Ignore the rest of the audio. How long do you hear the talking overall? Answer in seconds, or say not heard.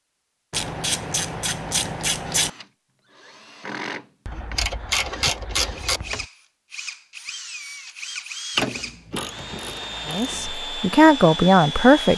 2 s.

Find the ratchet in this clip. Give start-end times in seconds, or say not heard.
0.5-2.5, 4.2-6.2, 8.6-10.6.